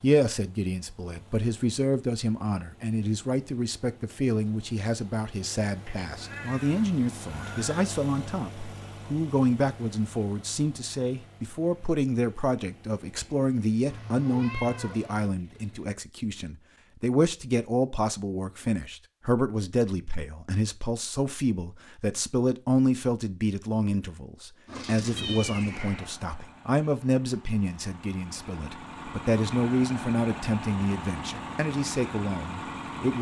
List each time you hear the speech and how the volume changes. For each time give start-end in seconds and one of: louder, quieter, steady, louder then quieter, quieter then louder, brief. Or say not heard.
0.0-33.1 steady.